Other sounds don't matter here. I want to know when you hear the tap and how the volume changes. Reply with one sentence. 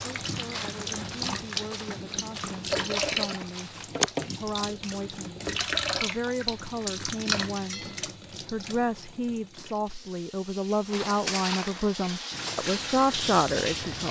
You can hear the tap from 0.0 to 14.0 s, getting quieter then louder.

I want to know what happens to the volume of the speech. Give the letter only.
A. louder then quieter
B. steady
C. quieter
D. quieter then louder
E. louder
E.